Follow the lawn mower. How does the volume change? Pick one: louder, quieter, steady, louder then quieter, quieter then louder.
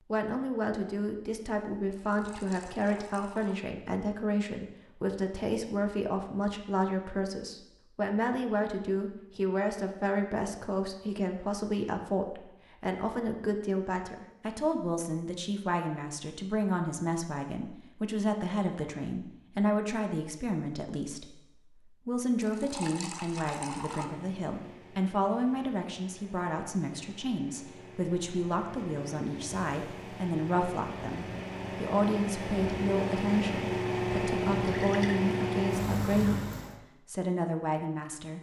louder.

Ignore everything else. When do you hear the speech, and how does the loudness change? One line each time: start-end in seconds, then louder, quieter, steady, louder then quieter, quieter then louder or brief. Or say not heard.
0.1-36.5 steady
37.0-38.3 brief.